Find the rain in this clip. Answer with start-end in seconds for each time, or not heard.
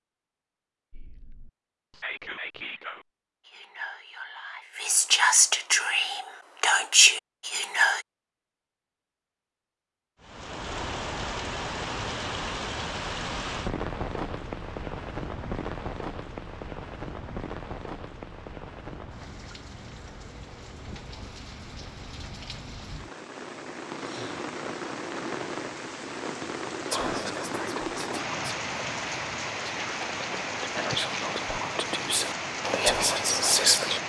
10.2-34.0.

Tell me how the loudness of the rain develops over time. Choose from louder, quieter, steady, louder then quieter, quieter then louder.
quieter then louder.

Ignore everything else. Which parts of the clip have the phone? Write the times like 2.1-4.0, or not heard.
not heard.